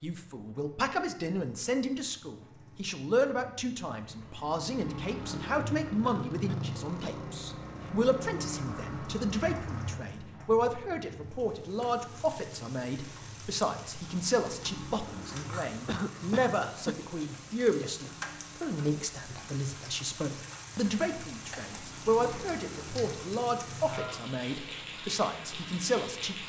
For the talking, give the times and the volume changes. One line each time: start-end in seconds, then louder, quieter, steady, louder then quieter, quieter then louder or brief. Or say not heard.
0.0-26.4 steady.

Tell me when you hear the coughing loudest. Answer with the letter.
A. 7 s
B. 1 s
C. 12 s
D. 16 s
D.